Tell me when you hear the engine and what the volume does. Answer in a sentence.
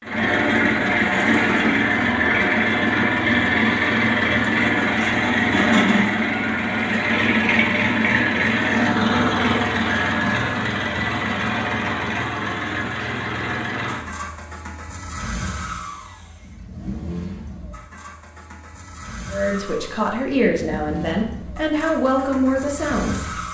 The engine can be heard from 0.0 to 23.5 s, getting quieter.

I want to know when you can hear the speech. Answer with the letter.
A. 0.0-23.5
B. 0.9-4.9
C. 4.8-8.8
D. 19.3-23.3
D.